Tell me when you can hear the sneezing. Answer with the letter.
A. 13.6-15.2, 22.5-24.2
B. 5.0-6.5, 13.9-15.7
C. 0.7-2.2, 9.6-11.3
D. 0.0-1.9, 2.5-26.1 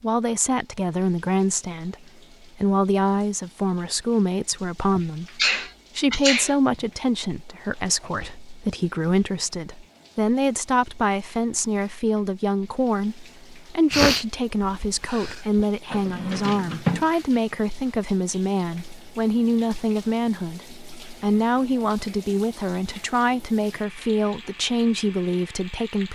B.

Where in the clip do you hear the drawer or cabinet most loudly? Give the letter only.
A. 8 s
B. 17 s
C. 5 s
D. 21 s
B.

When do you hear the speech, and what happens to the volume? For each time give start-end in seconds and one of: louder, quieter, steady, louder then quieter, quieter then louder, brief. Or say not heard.
0.0-1.9 brief
2.5-26.1 steady.